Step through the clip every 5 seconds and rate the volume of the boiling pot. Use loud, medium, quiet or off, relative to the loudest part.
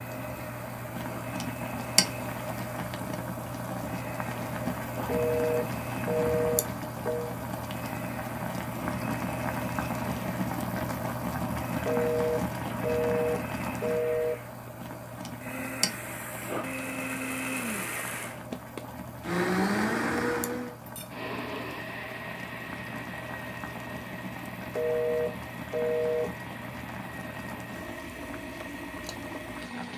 loud, loud, loud, medium, medium, medium.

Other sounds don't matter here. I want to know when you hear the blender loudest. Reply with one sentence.
The volume of the blender peaks at 20 seconds.